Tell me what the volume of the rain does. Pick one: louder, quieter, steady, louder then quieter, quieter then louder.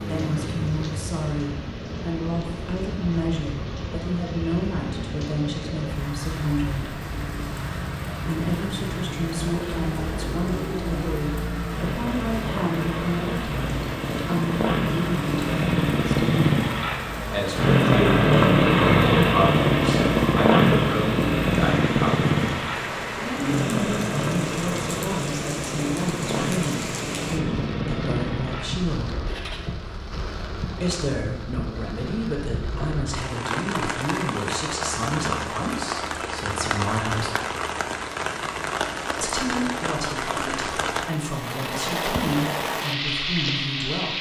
louder.